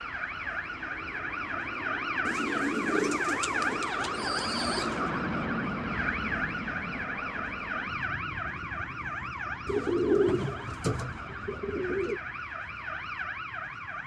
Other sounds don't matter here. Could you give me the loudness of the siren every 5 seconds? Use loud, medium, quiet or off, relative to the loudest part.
loud, loud, medium.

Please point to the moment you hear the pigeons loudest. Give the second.
10 s.